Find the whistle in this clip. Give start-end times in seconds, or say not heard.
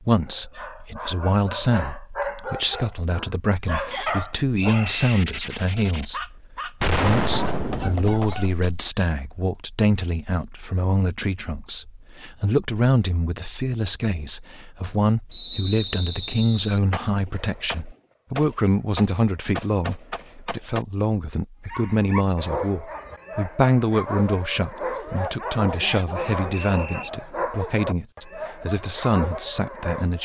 3.9-4.9, 15.3-16.8, 25.9-27.1.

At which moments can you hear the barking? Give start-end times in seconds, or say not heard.
0.2-8.8, 21.6-30.2.